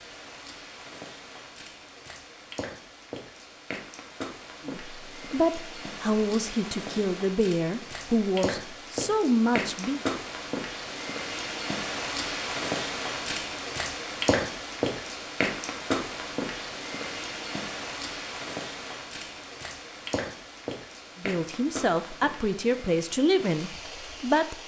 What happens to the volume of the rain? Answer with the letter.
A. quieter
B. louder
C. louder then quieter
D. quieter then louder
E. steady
C.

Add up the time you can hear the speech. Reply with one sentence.
The speech can be heard for 9 seconds in total.